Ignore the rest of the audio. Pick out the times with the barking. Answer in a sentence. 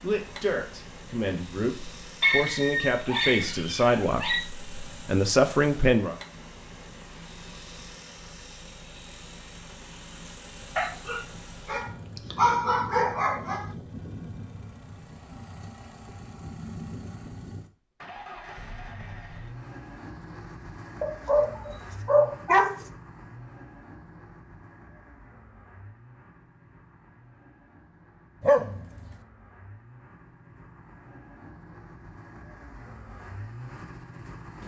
The barking can be heard from 2.2 to 4.5 s, from 10.8 to 13.7 s, from 21.0 to 22.9 s and from 28.4 to 29.1 s.